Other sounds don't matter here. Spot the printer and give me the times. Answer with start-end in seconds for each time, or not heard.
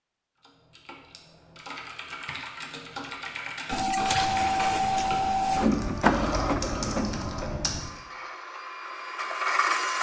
3.7-9.9.